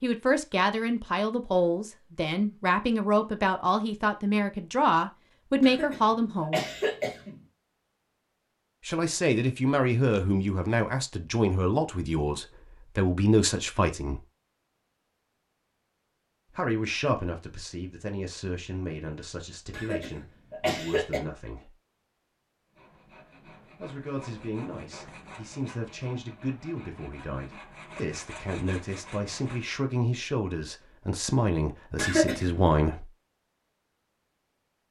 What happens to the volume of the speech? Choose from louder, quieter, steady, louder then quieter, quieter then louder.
quieter then louder.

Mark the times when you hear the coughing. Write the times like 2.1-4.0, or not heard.
5.6-7.4, 19.7-21.2, 31.9-32.7.